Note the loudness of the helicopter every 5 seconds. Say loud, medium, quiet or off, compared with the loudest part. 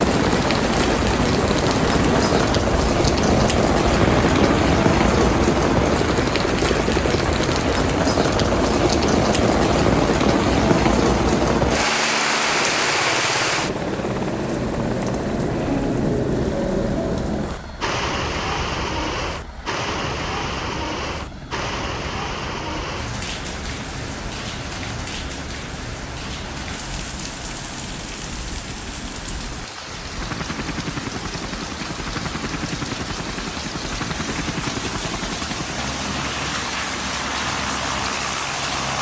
loud, loud, medium, quiet, quiet, quiet, medium, medium.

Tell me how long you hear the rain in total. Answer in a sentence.
You can hear the rain for 39 seconds altogether.